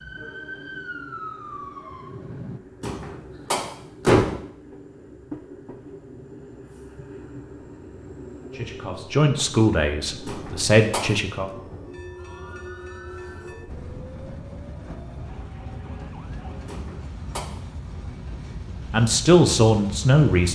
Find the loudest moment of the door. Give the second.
4 s.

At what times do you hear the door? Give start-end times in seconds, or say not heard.
2.8-4.3, 10.2-11.1, 16.6-17.4.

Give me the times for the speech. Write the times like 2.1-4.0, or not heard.
8.5-11.5, 18.9-20.4.